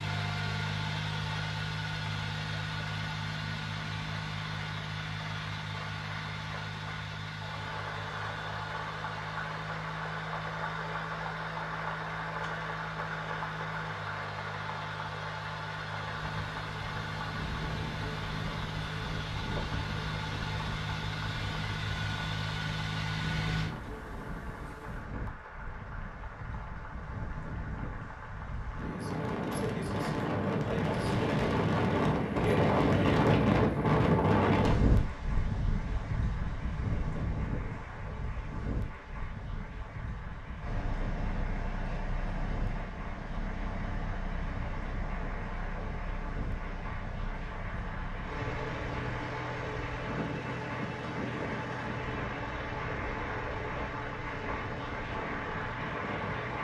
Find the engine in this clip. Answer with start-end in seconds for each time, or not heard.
0.0-23.7, 40.6-56.5.